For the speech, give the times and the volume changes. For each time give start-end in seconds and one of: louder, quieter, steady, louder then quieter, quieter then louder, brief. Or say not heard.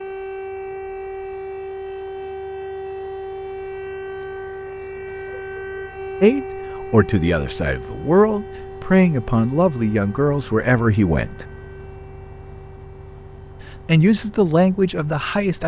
6.2-11.4 steady
13.8-15.6 brief.